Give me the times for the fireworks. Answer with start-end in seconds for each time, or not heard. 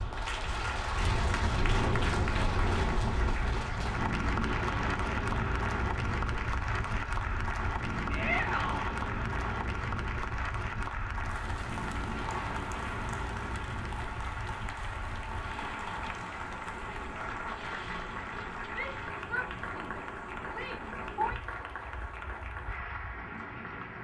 not heard.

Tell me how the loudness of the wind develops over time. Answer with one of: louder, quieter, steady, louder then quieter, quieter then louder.
quieter.